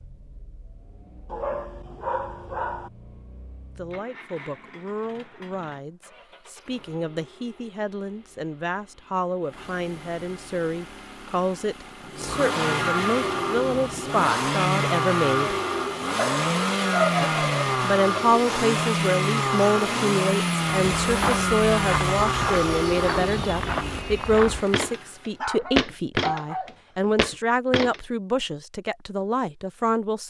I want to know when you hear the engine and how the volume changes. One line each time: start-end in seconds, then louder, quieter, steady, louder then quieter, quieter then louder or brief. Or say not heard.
0.0-25.2 louder.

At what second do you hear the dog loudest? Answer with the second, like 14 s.
17 s.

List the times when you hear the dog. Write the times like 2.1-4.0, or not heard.
1.3-2.9, 16.1-18.2, 25.4-27.1.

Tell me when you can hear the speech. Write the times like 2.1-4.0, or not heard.
3.8-15.6, 17.2-30.2.